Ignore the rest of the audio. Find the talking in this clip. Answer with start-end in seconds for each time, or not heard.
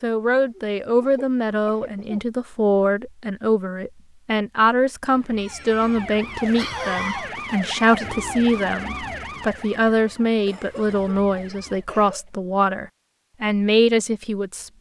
0.0-14.7.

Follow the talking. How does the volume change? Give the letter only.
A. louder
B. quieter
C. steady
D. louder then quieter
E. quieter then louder
C.